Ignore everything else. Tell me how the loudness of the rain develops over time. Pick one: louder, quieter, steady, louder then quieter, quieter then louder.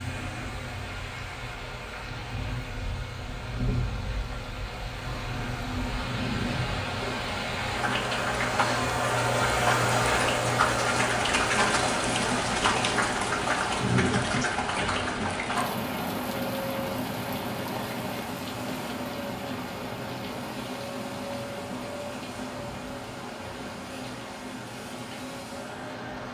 louder then quieter.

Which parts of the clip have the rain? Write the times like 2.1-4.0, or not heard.
0.0-26.2.